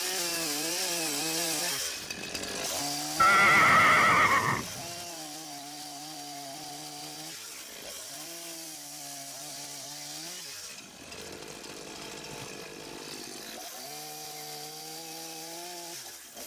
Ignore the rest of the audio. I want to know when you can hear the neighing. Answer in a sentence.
The neighing can be heard from 3.1 to 4.8 s.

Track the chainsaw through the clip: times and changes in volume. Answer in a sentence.
The chainsaw can be heard from 0.0 to 16.4 s, getting quieter.